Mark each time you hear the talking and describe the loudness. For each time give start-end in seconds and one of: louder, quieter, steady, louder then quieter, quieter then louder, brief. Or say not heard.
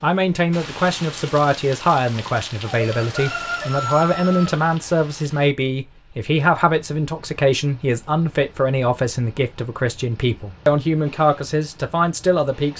0.0-12.7 steady.